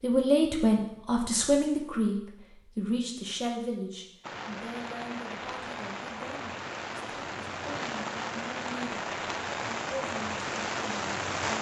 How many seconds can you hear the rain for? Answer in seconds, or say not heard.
7 s.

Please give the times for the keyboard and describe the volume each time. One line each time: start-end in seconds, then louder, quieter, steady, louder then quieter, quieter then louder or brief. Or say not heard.
not heard.